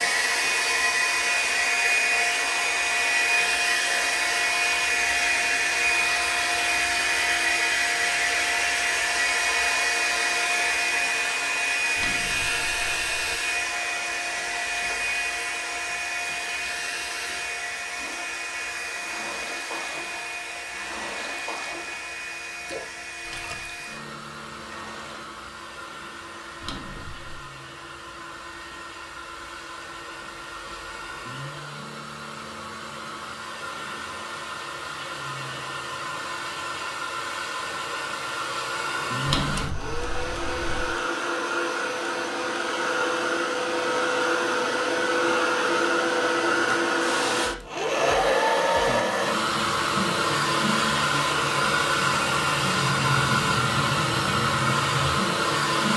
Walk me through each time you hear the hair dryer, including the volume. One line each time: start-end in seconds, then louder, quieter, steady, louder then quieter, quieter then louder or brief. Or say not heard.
0.0-55.9 quieter then louder.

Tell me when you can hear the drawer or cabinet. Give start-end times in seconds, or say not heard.
11.9-13.4, 26.6-27.4, 39.2-41.0.